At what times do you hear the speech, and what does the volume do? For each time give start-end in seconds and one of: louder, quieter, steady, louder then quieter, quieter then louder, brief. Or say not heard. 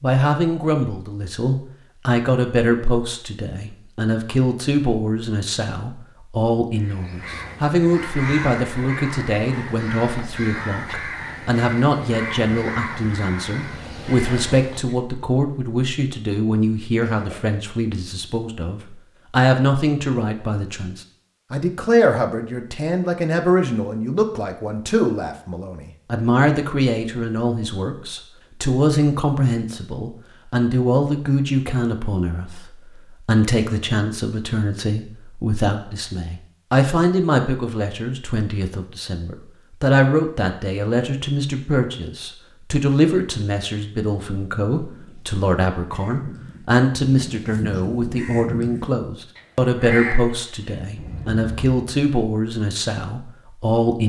0.0-54.0 steady.